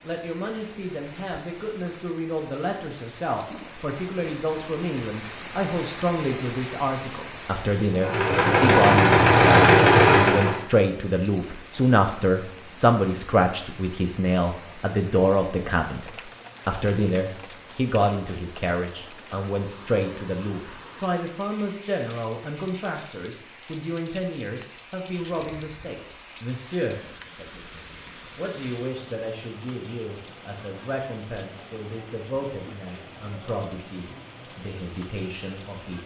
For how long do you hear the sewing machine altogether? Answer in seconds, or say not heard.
3 s.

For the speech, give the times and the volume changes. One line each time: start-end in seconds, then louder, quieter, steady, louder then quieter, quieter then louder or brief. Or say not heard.
0.0-36.0 louder then quieter.